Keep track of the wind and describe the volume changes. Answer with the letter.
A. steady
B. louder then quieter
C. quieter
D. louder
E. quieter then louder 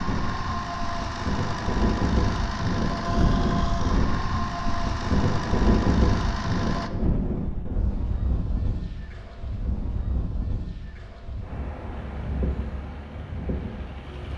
C.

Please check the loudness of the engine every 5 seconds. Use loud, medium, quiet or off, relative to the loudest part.
loud, loud, quiet.